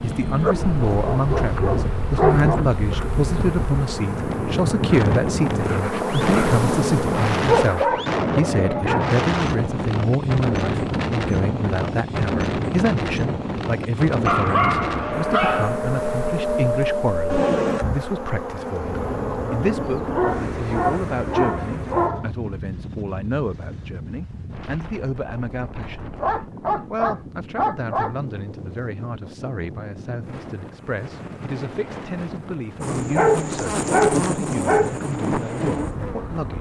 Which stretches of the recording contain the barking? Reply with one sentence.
You can hear the barking from 0.4 to 2.6 s, from 7.5 to 9.2 s, from 14.2 to 15.8 s, from 20.1 to 22.2 s, from 26.2 to 28.1 s and from 33.1 to 35.0 s.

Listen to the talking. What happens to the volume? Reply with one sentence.
The volume of the talking goes down.